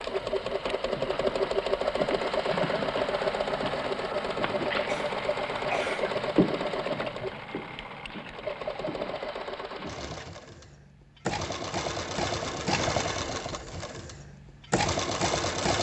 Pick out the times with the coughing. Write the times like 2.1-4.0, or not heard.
4.8-6.2.